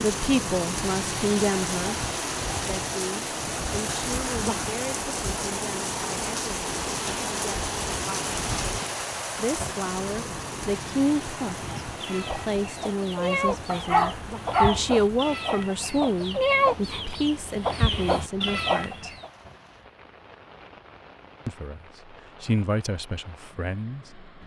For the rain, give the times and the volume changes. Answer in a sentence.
The rain can be heard from 0.0 to 24.4 s, getting quieter.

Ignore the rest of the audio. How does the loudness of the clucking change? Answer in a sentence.
The volume of the clucking goes up.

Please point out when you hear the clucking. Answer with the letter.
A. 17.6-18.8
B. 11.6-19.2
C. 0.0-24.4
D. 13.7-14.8
B.